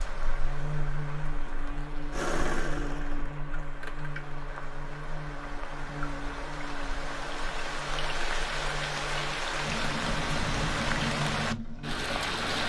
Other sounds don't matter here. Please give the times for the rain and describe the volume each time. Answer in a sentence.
The rain can be heard from 0.0 to 12.6 s, getting louder.